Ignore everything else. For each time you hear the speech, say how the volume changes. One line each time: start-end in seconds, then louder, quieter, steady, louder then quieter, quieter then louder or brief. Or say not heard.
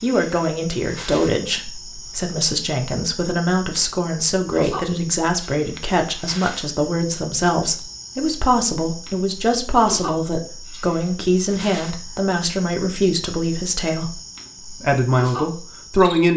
0.0-16.3 steady.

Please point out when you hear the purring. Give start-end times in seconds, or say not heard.
not heard.